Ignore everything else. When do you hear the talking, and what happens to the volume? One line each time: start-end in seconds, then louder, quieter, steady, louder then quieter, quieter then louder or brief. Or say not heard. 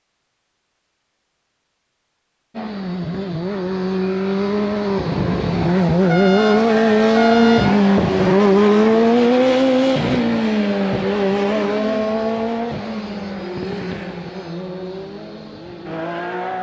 not heard.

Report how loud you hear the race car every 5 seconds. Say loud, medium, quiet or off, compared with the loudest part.
medium, loud, medium, quiet.